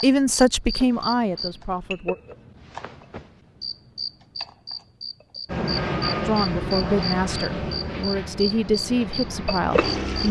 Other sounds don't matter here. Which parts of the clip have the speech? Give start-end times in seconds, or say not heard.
0.0-2.1, 6.2-10.2.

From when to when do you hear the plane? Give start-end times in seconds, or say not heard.
5.5-10.2.